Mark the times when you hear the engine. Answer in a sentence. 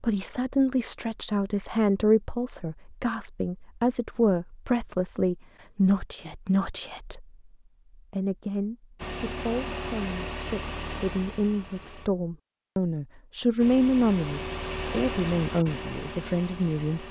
You can hear the engine from 8.9 to 12.1 s and from 13.6 to 17.0 s.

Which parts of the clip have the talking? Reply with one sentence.
You can hear the talking from 0.0 to 7.3 s and from 8.0 to 17.0 s.